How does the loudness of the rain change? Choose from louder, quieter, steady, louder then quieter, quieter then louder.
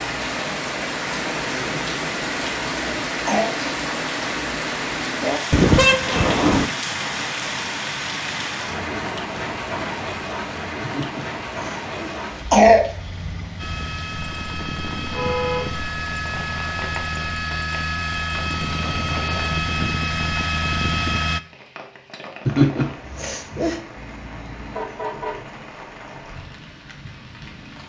quieter.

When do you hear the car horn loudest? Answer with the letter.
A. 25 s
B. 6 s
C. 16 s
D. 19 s
B.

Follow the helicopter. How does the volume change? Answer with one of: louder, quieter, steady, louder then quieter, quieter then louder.
louder.